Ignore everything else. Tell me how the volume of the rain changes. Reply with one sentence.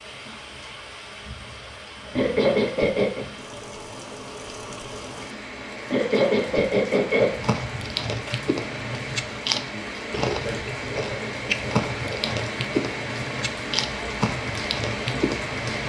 The volume of the rain goes up.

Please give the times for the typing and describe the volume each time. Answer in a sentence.
You can't hear the typing here.